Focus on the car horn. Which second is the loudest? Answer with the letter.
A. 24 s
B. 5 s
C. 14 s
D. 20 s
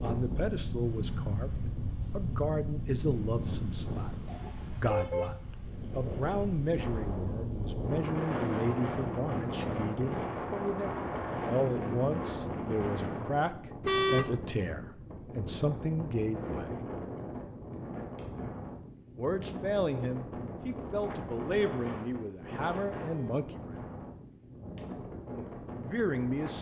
C.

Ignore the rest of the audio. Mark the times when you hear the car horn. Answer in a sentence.
The car horn can be heard from 4.2 to 5.3 s, from 13.8 to 14.3 s and from 23.0 to 23.4 s.